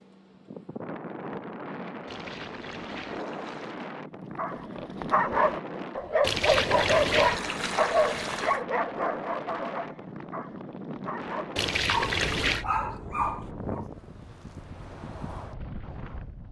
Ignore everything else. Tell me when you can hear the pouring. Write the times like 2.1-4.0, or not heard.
2.0-3.8, 6.2-8.6, 11.6-12.7.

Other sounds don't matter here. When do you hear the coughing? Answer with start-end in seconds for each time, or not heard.
not heard.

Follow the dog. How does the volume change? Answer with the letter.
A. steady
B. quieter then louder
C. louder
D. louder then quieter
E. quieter
B.